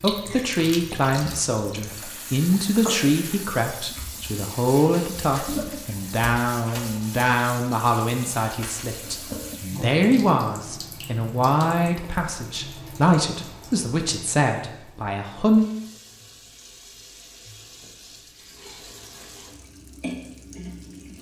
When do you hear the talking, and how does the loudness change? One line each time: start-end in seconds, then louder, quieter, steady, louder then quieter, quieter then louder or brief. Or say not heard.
0.0-15.7 steady.